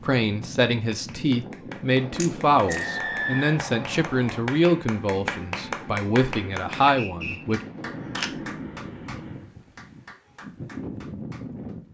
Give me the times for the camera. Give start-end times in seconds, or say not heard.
2.1-2.9, 7.8-9.4.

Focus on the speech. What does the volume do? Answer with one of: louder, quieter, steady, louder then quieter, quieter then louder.
steady.